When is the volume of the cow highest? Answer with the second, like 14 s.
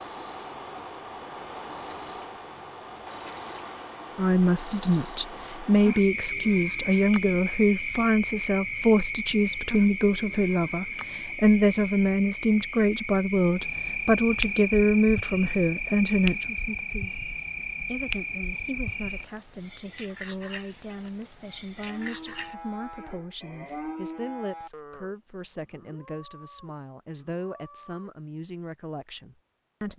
24 s.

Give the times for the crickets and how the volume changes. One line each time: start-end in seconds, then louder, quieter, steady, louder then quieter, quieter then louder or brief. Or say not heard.
0.0-22.6 quieter.